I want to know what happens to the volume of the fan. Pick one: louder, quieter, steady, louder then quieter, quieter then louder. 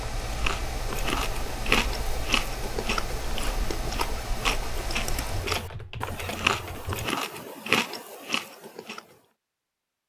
steady.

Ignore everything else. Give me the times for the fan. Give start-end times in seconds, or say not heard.
0.0-5.6.